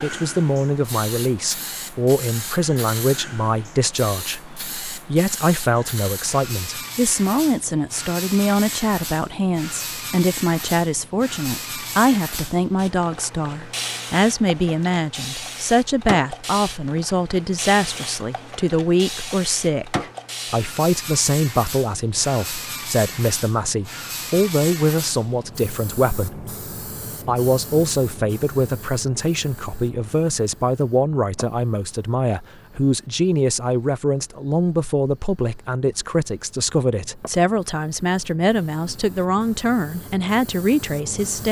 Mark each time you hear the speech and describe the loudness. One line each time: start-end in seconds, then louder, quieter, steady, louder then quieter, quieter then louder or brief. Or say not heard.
0.0-26.4 steady
27.2-41.4 steady.